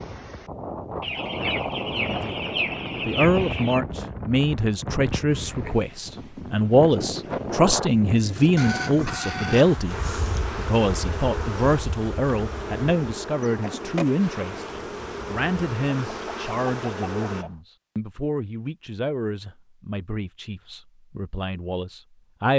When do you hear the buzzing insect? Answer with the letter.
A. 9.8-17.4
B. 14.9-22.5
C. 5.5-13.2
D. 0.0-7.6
A.